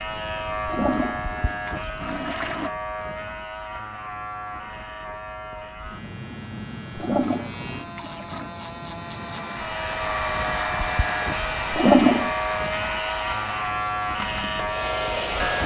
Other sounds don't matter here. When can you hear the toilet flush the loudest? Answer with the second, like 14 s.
12 s.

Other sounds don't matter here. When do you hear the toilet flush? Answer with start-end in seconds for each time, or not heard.
0.7-2.7, 7.0-8.5, 11.7-12.3.